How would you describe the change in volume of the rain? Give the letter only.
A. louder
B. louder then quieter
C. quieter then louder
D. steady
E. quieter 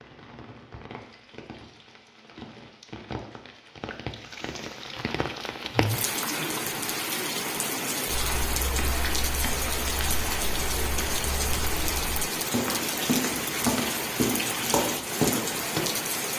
A.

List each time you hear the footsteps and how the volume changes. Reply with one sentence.
The footsteps can be heard from 8.1 to 15.8 s, getting louder.